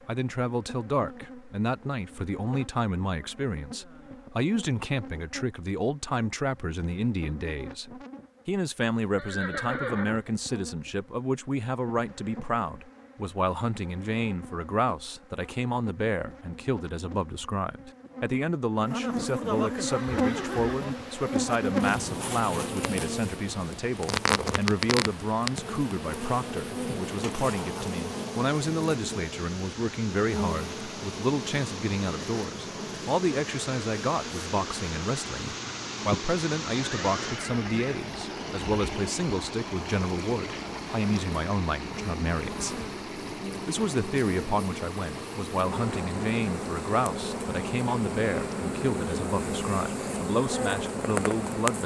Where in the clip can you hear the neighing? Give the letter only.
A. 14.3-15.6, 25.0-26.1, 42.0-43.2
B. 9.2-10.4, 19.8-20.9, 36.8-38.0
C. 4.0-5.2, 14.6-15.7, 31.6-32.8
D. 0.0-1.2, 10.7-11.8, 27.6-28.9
B.